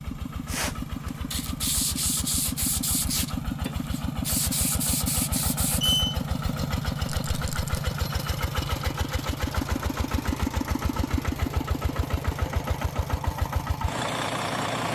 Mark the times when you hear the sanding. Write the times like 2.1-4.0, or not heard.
0.5-6.0.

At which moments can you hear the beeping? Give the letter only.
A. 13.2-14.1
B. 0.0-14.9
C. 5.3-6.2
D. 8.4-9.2
C.